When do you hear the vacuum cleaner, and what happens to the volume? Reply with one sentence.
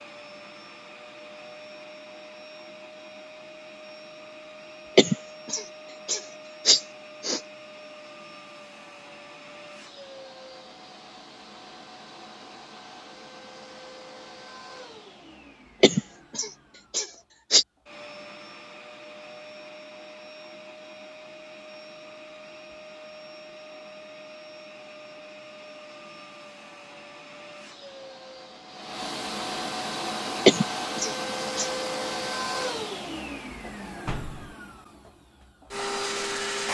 You can hear the vacuum cleaner from 0.0 to 36.6 s, getting louder.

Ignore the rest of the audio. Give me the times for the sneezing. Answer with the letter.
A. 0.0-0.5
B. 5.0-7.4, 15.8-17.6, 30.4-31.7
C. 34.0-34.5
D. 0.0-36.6
B.